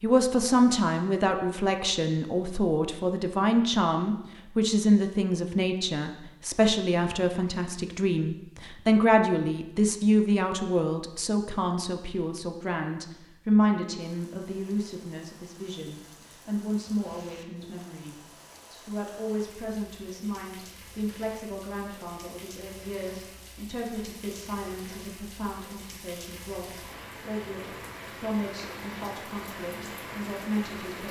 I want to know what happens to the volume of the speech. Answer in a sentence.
The loudness of the speech goes down.